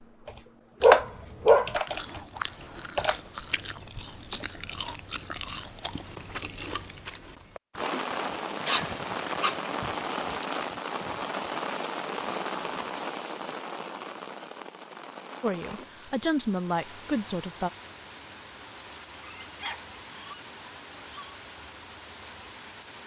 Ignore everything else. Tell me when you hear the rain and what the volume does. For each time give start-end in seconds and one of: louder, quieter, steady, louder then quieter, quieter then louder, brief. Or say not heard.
7.8-23.0 quieter.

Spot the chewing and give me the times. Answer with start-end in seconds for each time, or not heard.
1.9-7.8.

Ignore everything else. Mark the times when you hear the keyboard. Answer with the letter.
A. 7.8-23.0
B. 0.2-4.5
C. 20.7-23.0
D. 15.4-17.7
B.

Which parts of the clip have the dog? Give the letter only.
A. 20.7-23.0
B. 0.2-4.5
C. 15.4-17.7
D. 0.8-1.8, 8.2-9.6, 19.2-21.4
D.